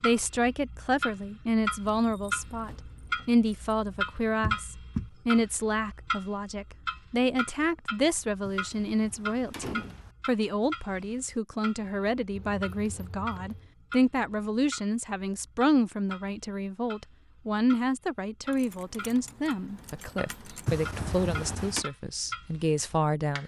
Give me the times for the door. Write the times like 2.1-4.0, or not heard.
4.4-5.1, 8.4-10.2, 20.6-21.9.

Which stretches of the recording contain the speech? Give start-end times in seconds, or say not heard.
0.0-23.4.